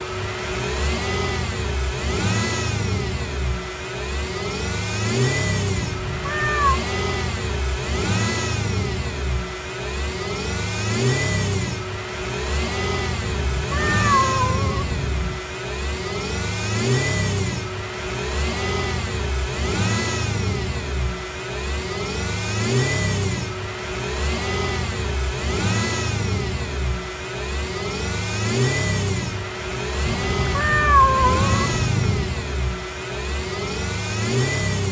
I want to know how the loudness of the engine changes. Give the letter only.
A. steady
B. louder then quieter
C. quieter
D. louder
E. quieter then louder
A.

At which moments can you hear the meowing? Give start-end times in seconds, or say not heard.
5.8-6.8, 13.2-15.4, 30.1-32.3.